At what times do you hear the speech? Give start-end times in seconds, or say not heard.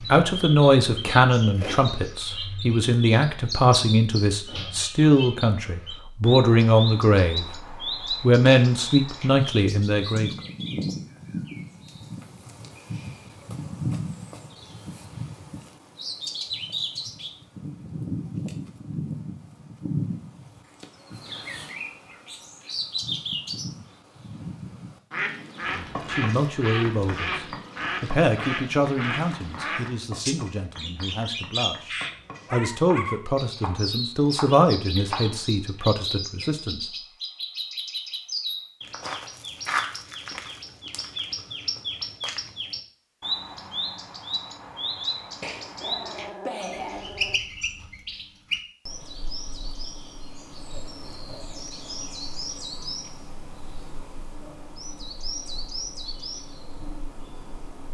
0.0-10.3, 25.8-36.8.